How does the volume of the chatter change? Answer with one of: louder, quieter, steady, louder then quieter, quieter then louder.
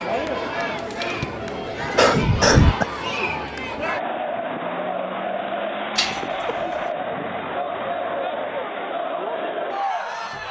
steady.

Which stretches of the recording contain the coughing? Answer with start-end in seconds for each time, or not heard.
1.9-2.9, 6.0-7.0.